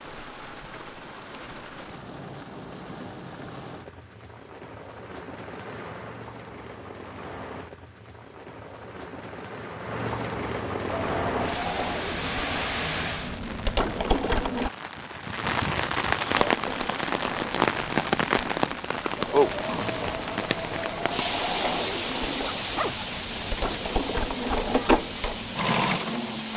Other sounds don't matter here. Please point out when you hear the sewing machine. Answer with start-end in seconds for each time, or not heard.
10.8-14.7, 16.4-26.5.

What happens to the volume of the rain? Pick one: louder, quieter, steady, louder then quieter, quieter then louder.
louder then quieter.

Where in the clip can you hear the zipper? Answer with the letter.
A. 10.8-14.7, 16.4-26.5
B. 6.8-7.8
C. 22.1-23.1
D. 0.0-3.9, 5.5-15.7
C.